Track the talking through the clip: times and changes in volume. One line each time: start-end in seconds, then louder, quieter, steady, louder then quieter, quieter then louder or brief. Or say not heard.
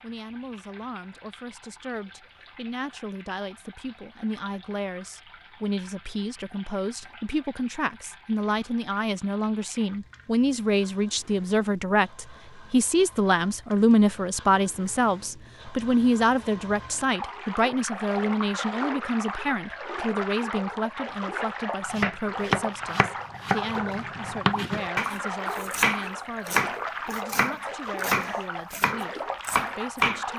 0.0-30.3 louder then quieter.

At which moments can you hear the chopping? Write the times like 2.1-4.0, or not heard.
21.9-30.2.